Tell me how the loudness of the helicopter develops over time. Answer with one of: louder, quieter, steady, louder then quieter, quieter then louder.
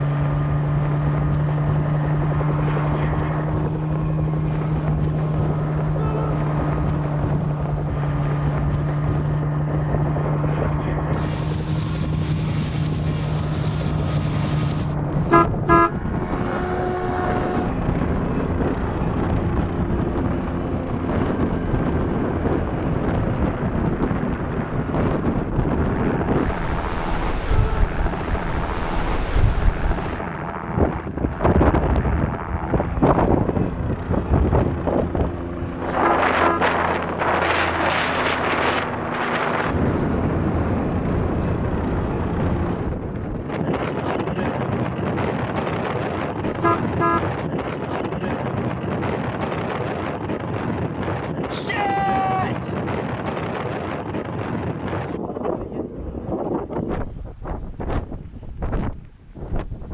quieter.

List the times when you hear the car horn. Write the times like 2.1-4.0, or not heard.
15.1-15.9, 35.9-36.6, 46.5-47.2.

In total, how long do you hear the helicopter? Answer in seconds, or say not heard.
43 s.